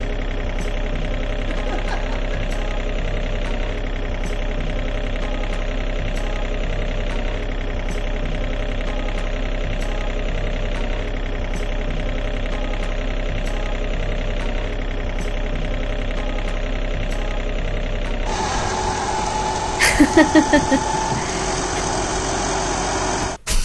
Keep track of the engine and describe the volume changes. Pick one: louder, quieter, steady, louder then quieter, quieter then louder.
louder.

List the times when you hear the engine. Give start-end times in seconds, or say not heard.
0.0-23.6.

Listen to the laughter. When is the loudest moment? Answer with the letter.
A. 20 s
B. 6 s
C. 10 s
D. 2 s
A.